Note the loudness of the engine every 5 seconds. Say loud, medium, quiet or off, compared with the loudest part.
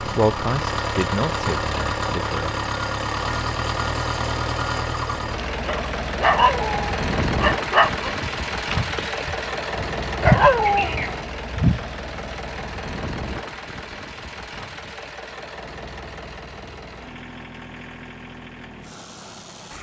loud, loud, medium, quiet.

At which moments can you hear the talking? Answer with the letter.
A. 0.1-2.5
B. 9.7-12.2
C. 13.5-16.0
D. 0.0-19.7
A.